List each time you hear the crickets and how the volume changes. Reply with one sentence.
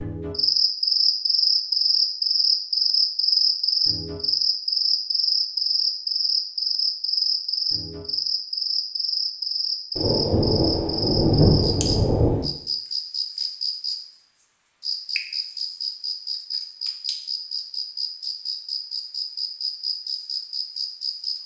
You can hear the crickets from 0.0 to 21.4 s, getting quieter.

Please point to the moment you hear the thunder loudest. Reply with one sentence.
The volume of the thunder peaks at 11 seconds.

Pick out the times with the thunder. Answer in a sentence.
The thunder can be heard from 9.9 to 12.5 s.